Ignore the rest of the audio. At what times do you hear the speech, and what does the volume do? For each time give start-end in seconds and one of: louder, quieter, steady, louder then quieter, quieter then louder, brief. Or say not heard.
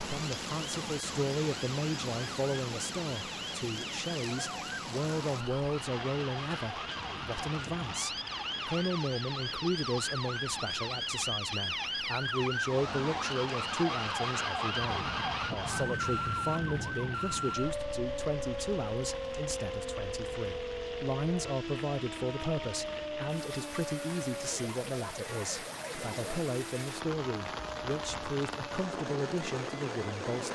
0.1-30.5 steady.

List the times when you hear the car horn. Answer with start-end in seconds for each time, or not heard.
not heard.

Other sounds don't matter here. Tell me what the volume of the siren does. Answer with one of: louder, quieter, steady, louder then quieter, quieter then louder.
louder then quieter.